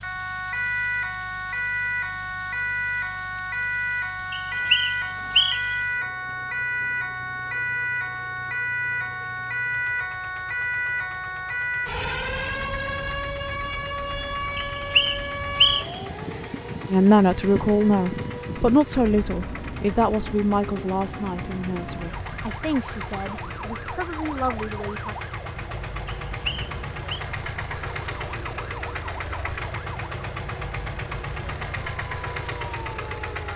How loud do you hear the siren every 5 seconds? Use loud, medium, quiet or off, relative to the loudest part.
loud, loud, loud, medium, medium, quiet, quiet.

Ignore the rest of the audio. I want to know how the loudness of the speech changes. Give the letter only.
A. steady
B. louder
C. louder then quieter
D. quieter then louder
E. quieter
E.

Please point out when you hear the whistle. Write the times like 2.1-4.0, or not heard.
4.3-5.8, 14.6-16.0, 26.1-27.2.